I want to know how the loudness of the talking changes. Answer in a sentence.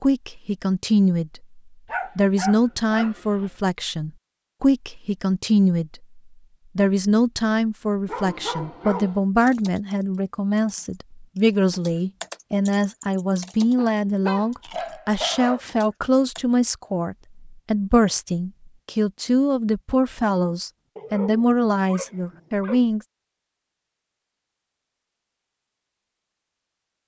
The loudness of the talking stays about the same.